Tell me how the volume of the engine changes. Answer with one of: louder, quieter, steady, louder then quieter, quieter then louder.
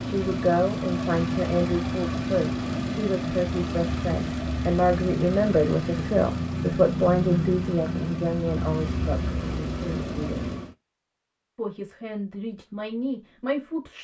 steady.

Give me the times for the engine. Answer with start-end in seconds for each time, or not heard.
0.0-10.8.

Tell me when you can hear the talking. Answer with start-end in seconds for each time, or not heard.
0.0-10.4, 11.6-13.9.